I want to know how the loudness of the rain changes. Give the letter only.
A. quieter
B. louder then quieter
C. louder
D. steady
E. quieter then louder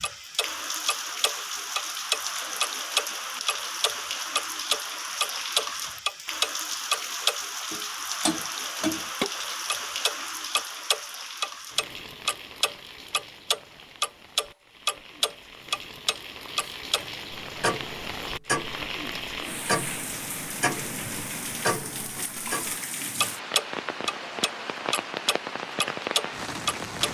E.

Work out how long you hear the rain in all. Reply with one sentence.
The rain can be heard for 27 seconds in total.